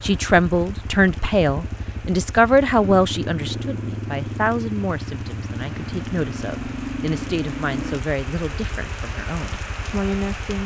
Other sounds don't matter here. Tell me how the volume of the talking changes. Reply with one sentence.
The volume of the talking goes down.